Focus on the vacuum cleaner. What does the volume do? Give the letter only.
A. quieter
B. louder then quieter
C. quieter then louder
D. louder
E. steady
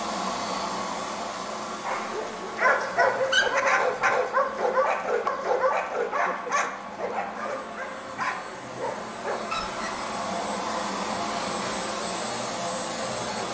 C.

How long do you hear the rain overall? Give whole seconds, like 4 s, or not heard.
not heard.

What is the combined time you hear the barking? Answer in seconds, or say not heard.
8 s.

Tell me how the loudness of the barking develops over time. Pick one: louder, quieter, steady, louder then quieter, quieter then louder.
quieter.